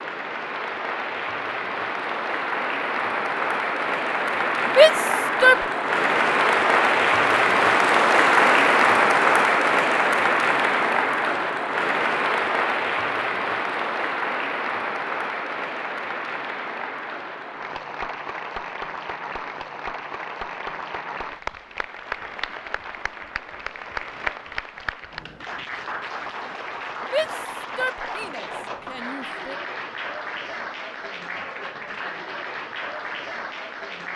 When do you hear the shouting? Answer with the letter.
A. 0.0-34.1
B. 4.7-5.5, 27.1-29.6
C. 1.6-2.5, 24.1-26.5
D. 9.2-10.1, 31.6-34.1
B.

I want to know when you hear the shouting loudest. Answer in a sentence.
The volume of the shouting peaks at 5 seconds.